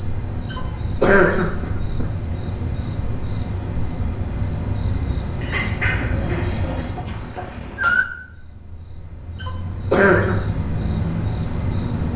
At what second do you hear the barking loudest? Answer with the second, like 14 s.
8 s.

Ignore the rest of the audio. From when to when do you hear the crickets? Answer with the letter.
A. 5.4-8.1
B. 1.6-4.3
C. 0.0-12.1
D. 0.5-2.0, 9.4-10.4
C.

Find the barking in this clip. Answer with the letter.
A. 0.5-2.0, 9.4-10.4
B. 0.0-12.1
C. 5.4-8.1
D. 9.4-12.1
C.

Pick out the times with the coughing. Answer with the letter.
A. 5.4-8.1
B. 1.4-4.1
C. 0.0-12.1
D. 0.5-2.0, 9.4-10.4
D.